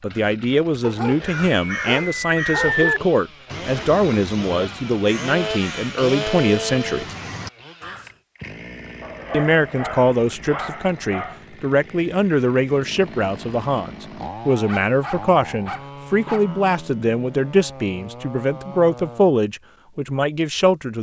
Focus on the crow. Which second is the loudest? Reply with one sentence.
The loudest moment of the crow is at 3 seconds.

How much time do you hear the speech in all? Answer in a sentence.
The speech can be heard for 19 seconds in total.